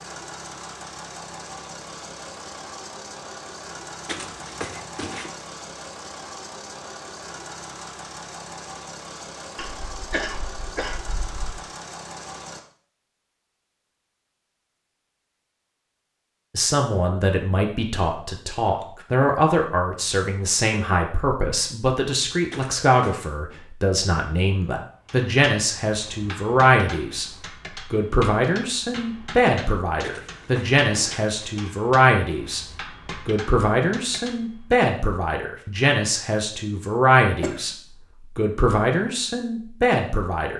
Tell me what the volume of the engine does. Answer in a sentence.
The volume of the engine stays about the same.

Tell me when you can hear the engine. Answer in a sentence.
You can hear the engine from 0.0 to 12.6 s.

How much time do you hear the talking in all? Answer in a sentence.
You can hear the talking for 22 seconds altogether.